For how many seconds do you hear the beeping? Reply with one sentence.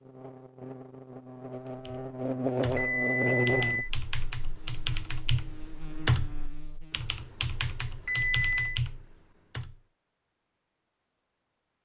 You can hear the beeping for 2 seconds altogether.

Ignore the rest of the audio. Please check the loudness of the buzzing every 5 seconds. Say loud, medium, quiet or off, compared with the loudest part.
loud, quiet, off.